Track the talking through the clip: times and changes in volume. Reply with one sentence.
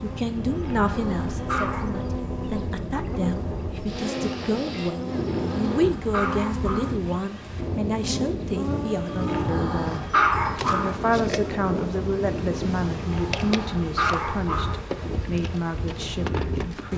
You can hear the talking from 0.0 to 16.9 s, at a steady volume.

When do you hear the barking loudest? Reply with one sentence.
The loudest moment of the barking is at 10 seconds.